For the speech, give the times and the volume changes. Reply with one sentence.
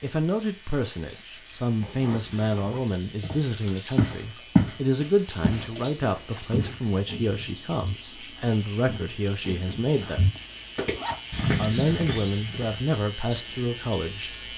You can hear the speech from 0.0 to 10.2 s, at a steady volume; and briefly from 11.6 to 14.3 s.